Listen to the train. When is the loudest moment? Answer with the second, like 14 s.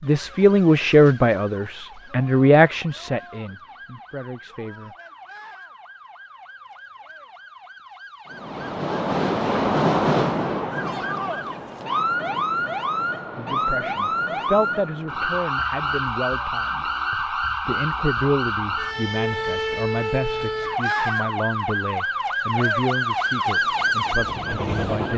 10 s.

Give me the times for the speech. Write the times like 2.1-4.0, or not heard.
0.0-4.9, 13.3-25.1.